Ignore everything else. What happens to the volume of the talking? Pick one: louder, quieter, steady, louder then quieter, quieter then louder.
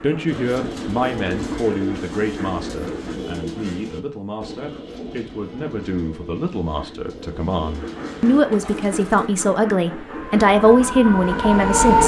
quieter then louder.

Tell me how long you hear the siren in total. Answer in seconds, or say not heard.
2 s.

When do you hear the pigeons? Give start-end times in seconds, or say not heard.
0.2-9.3.